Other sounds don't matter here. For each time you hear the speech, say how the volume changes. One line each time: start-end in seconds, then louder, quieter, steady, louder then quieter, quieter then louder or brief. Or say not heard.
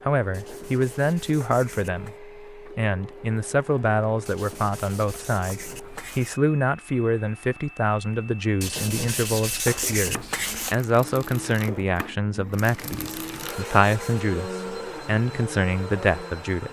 0.0-16.6 steady.